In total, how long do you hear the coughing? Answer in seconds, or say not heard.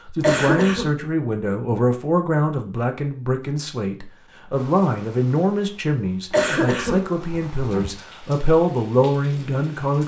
2 s.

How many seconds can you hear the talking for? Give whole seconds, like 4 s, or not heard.
10 s.